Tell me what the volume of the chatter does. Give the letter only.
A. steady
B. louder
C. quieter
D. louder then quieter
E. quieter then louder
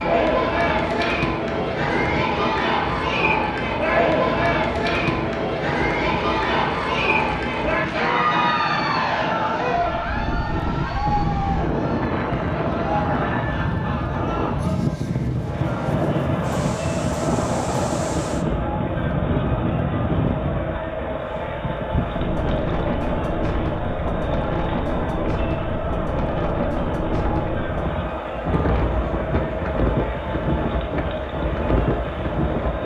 C.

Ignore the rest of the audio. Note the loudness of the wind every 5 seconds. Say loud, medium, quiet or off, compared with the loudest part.
medium, medium, loud, loud, loud, loud, loud.